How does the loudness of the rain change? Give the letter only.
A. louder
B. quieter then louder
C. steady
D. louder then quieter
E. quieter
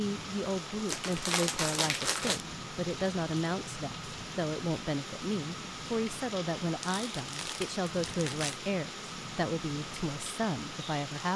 C.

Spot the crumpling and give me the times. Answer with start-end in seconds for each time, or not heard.
0.8-2.5, 6.8-8.6.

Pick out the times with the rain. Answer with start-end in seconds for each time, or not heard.
0.0-11.3.